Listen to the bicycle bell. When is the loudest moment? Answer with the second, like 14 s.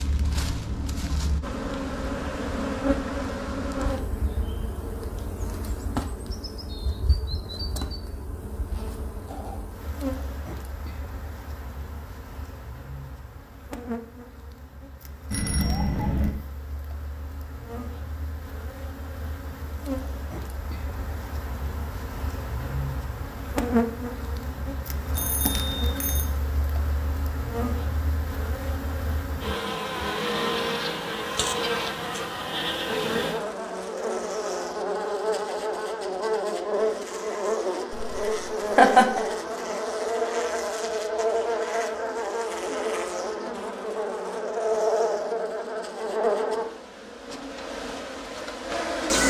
16 s.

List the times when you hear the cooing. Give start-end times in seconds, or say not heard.
not heard.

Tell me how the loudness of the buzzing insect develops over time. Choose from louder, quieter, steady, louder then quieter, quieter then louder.
quieter then louder.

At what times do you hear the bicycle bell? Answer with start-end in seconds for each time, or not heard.
15.3-16.3, 25.1-26.2.